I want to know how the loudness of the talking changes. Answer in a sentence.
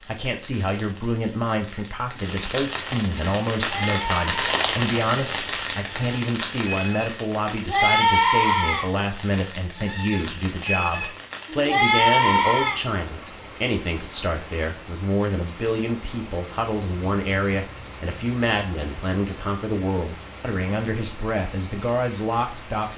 The volume of the talking stays about the same.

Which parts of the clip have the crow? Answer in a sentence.
You can't hear the crow here.